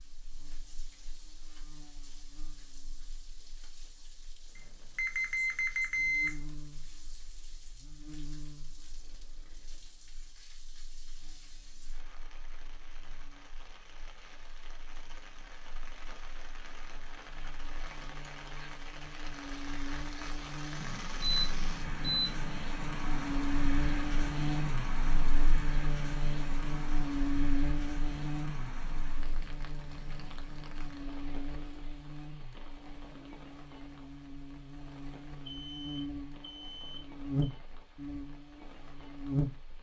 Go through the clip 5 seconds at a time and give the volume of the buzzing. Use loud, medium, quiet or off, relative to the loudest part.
quiet, quiet, quiet, quiet, loud, loud, medium, loud.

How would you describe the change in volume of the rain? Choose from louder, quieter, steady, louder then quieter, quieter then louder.
louder then quieter.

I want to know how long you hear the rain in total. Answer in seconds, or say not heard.
40 s.